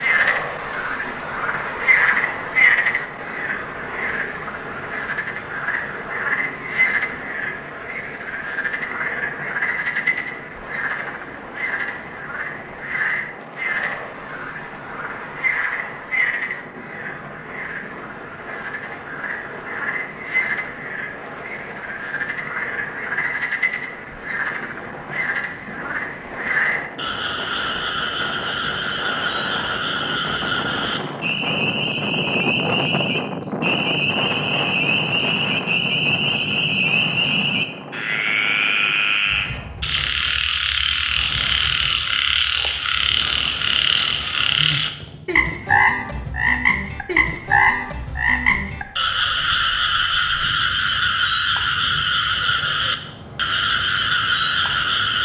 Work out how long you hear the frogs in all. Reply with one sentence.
The frogs can be heard for 55 seconds in total.